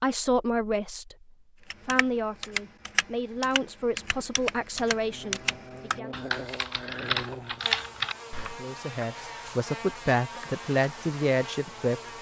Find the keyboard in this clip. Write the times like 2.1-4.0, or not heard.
1.7-8.6.